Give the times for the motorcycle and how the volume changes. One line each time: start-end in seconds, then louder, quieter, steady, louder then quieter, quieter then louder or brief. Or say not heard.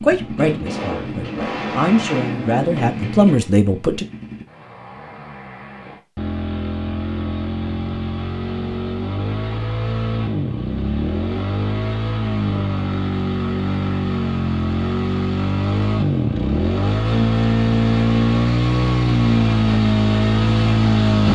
0.0-21.3 louder.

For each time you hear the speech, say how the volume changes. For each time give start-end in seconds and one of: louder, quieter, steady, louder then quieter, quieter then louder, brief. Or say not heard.
0.0-4.0 quieter then louder.